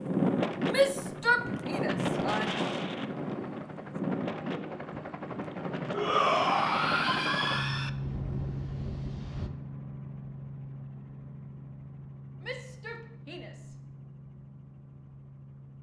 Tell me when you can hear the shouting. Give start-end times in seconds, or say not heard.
0.7-2.6, 5.9-7.9, 12.4-13.8.